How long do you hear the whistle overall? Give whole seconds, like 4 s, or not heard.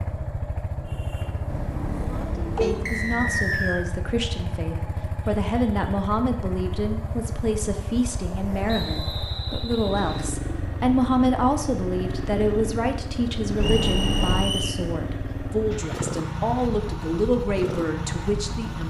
4 s.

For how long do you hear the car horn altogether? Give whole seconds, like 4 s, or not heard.
2 s.